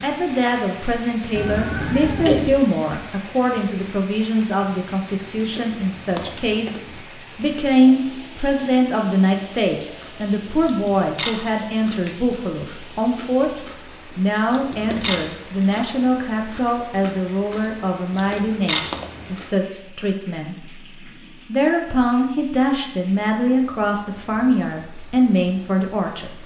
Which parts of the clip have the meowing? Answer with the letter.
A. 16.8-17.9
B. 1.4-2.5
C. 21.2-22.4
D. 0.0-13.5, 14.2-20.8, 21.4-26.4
B.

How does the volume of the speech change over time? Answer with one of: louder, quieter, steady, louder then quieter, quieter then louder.
steady.